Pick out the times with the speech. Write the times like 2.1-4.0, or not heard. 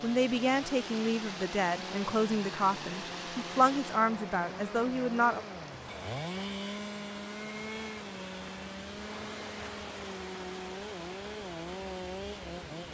0.0-5.5.